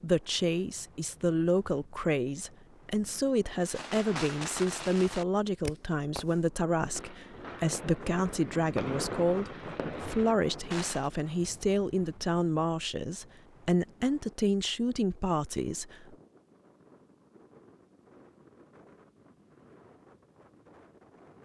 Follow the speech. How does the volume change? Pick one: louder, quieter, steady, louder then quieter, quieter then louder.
steady.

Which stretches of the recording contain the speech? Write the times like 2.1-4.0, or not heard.
0.0-16.1.